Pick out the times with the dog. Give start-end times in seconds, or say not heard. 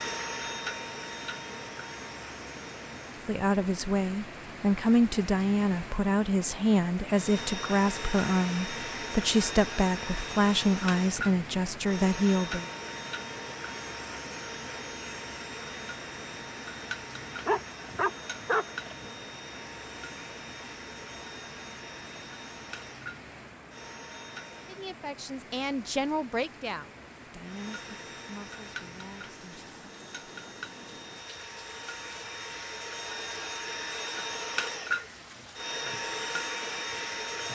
17.4-19.1.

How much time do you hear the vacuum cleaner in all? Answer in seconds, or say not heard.
31 s.